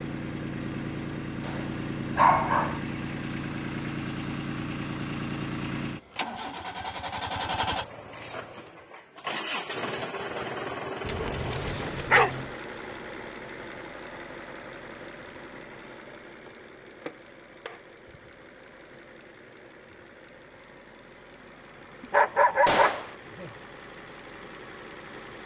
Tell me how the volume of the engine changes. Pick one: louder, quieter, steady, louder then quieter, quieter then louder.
quieter.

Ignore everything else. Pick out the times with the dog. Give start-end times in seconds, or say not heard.
2.1-2.8, 11.1-12.5, 22.0-23.5.